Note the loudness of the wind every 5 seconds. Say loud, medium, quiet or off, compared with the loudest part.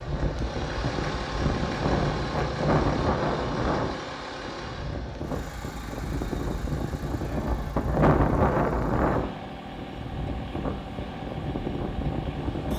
loud, loud, medium.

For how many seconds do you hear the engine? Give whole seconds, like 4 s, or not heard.
13 s.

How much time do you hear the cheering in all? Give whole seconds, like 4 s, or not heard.
not heard.